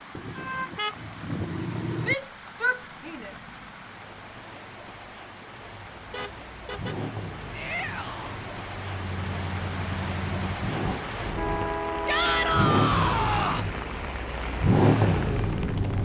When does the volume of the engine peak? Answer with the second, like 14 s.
15 s.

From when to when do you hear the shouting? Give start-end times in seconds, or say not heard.
2.0-3.3, 7.5-8.3, 12.1-13.7.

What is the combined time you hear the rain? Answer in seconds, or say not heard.
16 s.